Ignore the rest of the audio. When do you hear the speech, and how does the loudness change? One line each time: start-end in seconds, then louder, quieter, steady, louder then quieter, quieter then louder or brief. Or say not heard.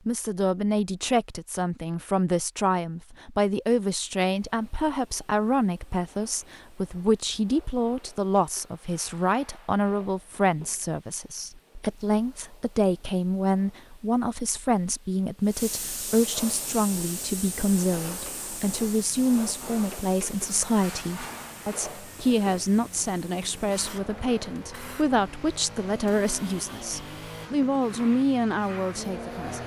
0.1-29.6 steady.